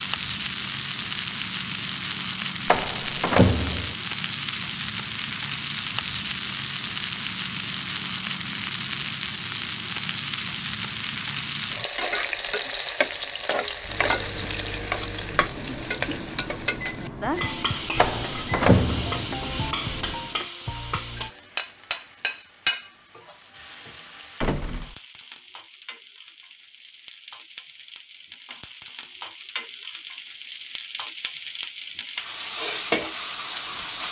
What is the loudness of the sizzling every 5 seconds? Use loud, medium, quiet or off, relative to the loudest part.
loud, loud, loud, loud, medium, quiet, loud.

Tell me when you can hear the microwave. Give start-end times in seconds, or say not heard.
13.6-20.4.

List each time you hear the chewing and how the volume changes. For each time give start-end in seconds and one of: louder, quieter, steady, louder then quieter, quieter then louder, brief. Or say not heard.
not heard.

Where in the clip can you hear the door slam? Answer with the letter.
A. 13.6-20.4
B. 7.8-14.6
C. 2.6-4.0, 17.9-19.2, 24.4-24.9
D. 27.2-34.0
C.